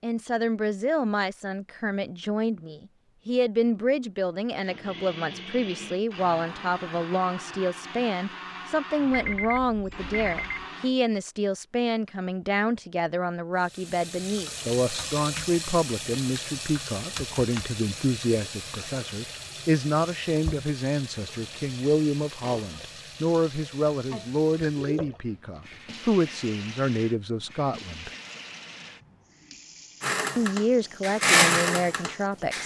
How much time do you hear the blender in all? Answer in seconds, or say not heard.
9 s.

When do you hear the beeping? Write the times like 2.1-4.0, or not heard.
9.1-10.7.